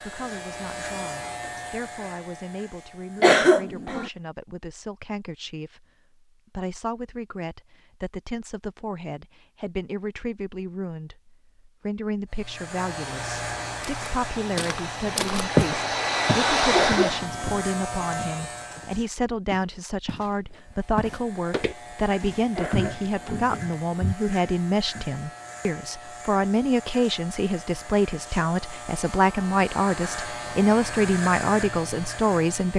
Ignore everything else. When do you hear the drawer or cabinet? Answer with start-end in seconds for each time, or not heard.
not heard.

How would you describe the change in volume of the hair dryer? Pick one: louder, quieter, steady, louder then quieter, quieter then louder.
louder.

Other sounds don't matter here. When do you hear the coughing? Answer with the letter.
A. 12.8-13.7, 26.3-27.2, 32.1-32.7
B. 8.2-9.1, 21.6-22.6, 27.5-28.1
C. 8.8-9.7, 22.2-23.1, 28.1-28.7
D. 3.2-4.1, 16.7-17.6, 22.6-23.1
D.